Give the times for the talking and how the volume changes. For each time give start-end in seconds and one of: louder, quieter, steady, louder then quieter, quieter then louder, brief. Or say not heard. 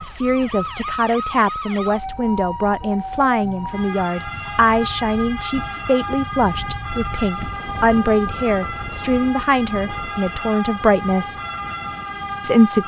0.0-11.4 steady
12.4-12.8 brief.